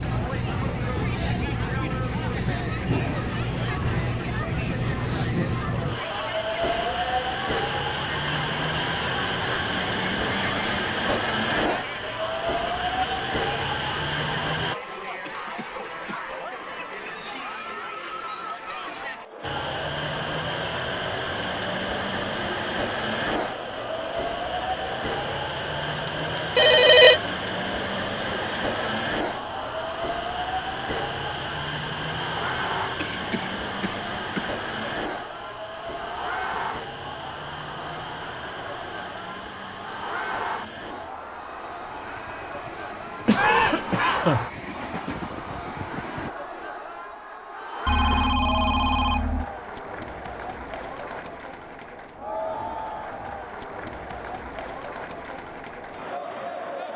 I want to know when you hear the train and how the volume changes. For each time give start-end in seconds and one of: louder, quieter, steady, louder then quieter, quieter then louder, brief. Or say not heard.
0.0-14.8 steady
19.4-46.3 quieter.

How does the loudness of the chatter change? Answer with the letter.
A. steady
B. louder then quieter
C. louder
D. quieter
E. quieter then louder
A.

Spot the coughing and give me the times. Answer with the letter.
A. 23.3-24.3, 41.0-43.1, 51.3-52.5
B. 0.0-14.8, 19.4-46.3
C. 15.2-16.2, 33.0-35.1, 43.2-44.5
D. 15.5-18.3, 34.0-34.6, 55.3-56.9
C.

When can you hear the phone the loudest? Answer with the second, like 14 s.
27 s.